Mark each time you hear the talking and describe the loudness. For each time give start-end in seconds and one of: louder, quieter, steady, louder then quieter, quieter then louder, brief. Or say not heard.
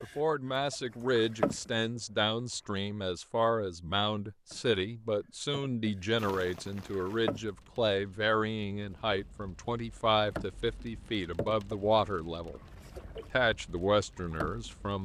0.0-12.6 steady
13.3-15.0 brief.